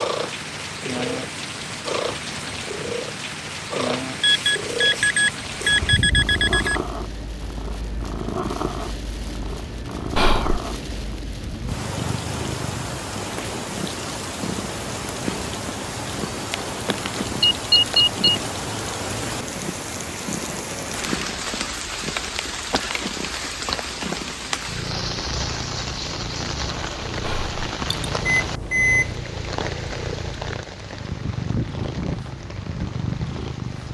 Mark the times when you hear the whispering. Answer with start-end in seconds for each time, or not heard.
10.2-10.6, 27.2-27.6.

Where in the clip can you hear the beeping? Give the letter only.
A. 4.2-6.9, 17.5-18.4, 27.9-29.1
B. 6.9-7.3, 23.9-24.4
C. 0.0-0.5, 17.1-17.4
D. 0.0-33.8
A.